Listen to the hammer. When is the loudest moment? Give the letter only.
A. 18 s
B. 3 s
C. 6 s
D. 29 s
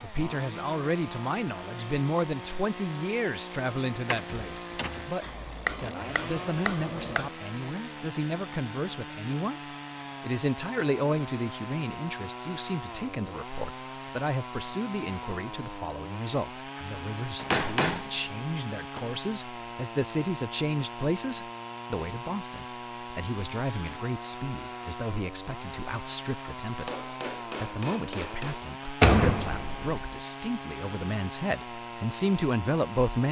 A.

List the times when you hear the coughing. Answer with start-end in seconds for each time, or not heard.
not heard.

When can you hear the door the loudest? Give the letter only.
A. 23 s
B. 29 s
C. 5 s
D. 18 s
B.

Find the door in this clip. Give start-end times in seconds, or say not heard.
4.1-5.1, 29.0-30.1.